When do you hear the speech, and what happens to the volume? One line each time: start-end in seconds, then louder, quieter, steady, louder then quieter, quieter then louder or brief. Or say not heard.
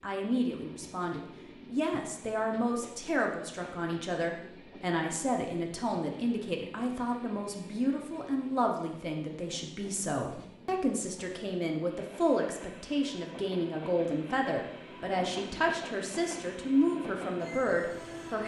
0.0-18.4 steady.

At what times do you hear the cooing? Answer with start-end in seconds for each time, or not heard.
not heard.